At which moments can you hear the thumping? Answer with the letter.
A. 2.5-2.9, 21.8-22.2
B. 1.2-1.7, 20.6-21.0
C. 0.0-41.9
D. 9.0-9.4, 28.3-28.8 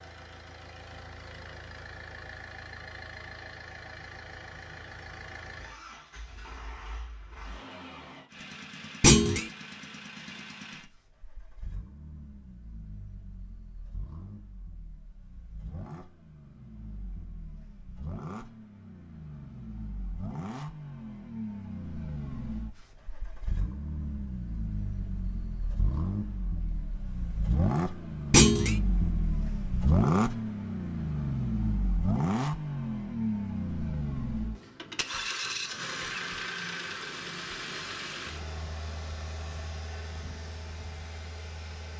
D.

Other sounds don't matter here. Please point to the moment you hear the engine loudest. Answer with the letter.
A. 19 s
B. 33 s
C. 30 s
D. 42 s
C.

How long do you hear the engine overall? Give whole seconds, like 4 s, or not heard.
42 s.